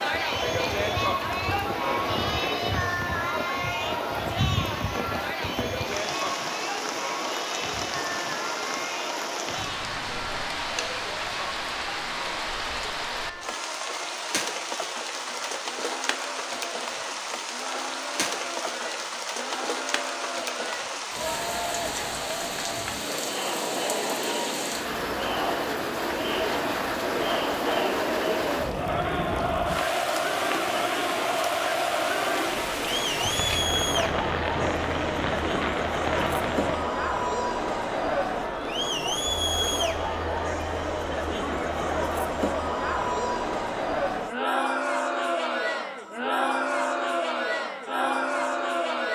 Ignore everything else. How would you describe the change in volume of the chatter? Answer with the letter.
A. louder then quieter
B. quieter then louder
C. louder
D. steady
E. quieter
B.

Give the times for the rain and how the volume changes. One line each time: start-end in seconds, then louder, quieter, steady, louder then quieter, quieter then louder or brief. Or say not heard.
0.0-37.0 steady.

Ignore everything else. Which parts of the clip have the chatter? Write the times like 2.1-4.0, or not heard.
0.0-49.0.